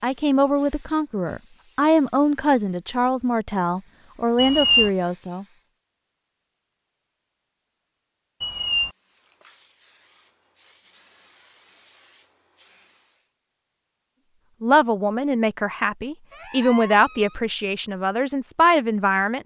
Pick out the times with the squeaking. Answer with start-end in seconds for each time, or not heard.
4.3-4.9, 8.4-8.9, 16.3-17.4.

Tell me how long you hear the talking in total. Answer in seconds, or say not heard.
10 s.